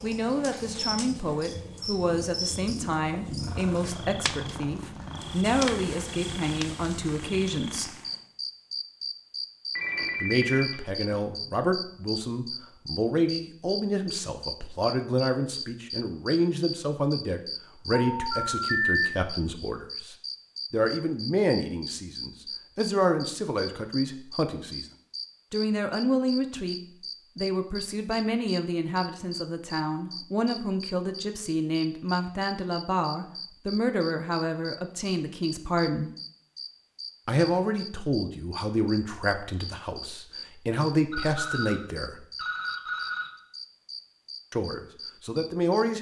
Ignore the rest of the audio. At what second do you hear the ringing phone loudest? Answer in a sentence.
The volume of the ringing phone peaks at 19 seconds.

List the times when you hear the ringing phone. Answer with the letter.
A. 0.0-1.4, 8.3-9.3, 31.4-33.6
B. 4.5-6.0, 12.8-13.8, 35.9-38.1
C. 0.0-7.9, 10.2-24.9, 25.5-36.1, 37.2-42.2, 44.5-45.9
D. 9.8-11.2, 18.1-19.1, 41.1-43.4
D.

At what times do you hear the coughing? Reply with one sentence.
The coughing can't be heard in this clip.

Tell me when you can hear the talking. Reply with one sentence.
The talking can be heard from 0.0 to 7.9 s, from 10.2 to 24.9 s, from 25.5 to 36.1 s, from 37.2 to 42.2 s and from 44.5 to 45.9 s.